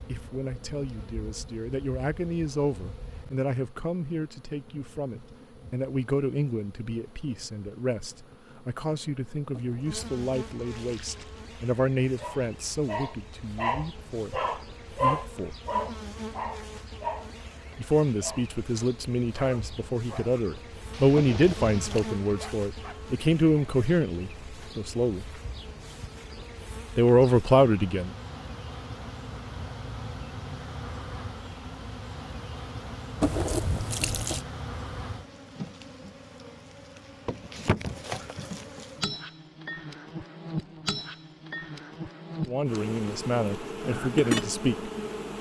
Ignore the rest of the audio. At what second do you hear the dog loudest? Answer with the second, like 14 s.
15 s.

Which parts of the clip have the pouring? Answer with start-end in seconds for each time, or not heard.
9.5-11.4, 21.1-22.1, 33.2-34.5.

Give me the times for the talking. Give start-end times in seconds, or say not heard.
0.1-15.6, 17.8-25.2, 26.9-28.1, 42.5-44.9.